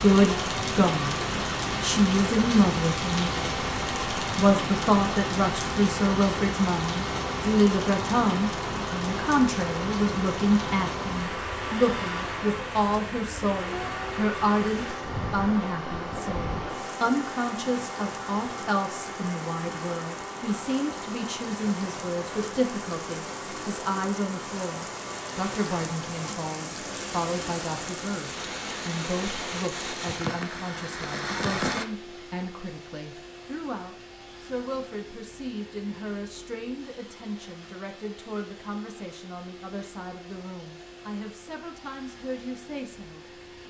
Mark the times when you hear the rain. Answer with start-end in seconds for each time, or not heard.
0.0-31.9.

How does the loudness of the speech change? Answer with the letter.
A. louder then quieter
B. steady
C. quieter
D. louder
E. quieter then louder
C.